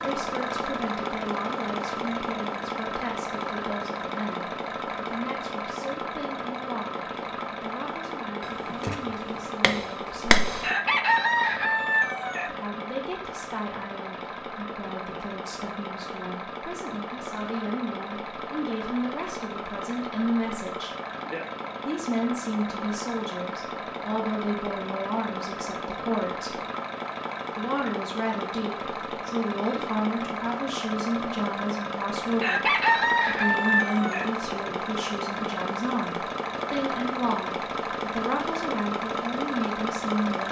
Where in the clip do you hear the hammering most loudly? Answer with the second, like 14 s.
10 s.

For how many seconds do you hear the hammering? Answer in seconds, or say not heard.
2 s.